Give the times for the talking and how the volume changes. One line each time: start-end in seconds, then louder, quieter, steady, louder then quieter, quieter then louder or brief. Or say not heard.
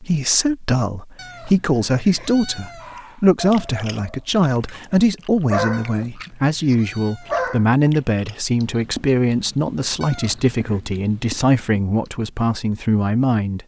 0.0-13.6 steady.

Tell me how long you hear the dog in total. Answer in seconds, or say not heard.
5 s.